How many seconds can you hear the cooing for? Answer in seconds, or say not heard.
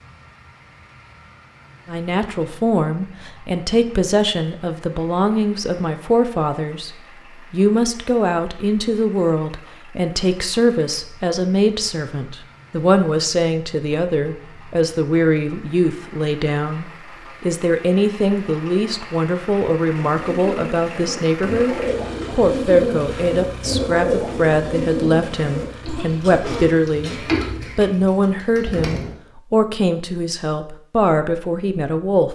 9 s.